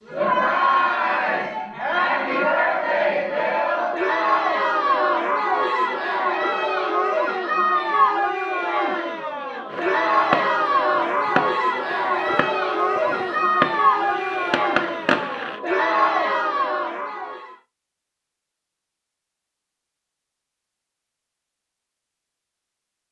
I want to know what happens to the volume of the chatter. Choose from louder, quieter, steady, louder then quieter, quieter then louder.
steady.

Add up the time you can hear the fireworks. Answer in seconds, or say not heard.
6 s.